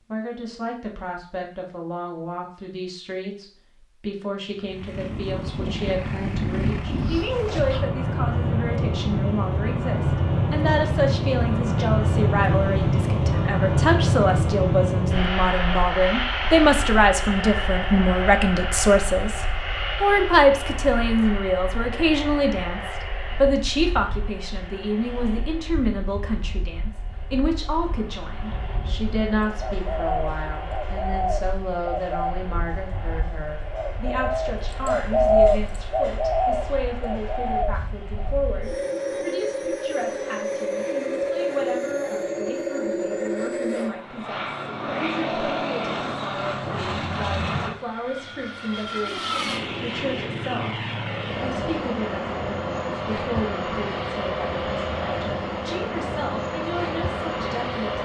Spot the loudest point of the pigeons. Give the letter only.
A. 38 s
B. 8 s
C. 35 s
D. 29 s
C.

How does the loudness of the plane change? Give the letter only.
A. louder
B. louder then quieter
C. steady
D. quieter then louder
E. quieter
D.